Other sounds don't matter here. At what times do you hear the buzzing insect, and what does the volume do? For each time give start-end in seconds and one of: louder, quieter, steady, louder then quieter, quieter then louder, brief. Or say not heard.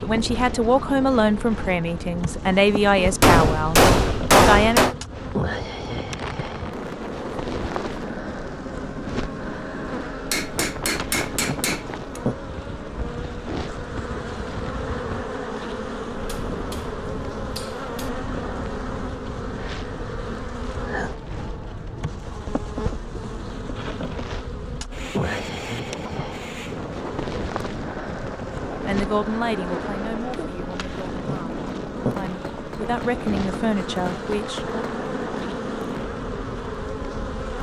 0.0-37.5 steady.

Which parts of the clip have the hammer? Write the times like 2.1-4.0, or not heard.
3.2-5.0, 10.3-12.2, 16.1-18.1, 32.1-34.8.